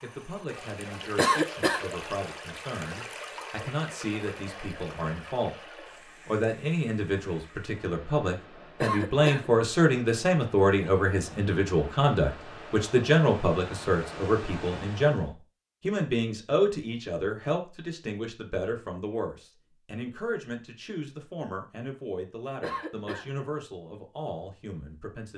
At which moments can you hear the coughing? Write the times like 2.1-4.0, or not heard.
1.1-1.9, 8.8-9.5, 22.6-23.3.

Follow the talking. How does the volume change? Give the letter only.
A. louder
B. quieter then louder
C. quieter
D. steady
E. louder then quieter
E.